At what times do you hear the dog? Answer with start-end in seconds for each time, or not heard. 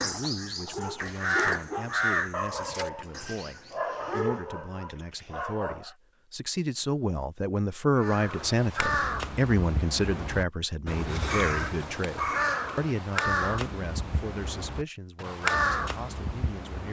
0.6-6.0.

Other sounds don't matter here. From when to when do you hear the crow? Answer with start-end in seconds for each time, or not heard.
0.0-3.8, 8.0-16.8.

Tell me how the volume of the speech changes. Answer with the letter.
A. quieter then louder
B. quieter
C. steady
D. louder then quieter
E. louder
D.